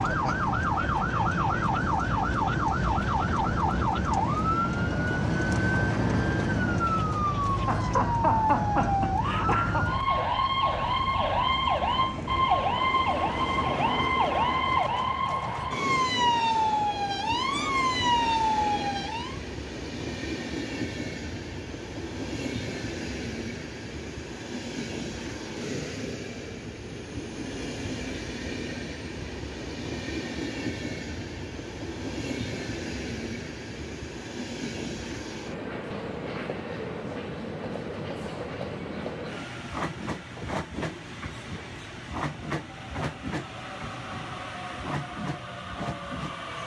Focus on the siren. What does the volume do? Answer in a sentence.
The loudness of the siren stays about the same.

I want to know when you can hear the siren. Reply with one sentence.
The siren can be heard from 0.0 to 19.4 s.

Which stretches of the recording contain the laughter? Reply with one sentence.
The laughter can be heard from 7.7 to 9.9 s.